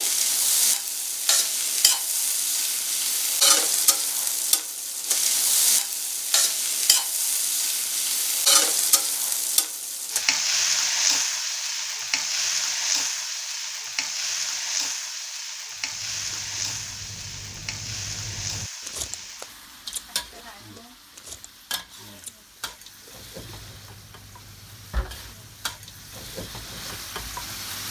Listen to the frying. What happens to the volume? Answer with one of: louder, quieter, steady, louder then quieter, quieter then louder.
quieter.